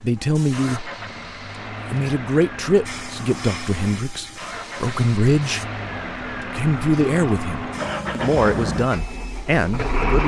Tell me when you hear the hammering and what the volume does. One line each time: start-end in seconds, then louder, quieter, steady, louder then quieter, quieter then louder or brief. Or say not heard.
not heard.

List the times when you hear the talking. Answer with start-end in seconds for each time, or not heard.
0.0-0.9, 1.9-5.7, 6.5-10.2.